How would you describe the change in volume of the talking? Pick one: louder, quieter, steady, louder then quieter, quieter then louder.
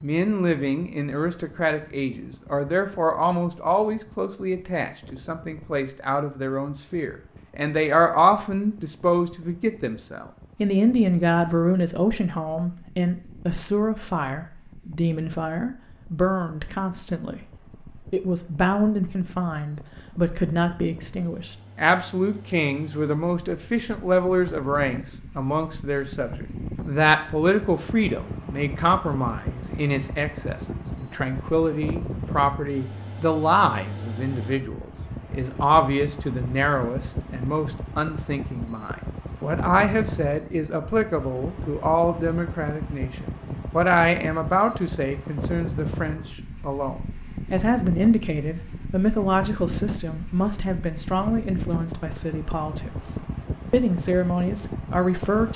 steady.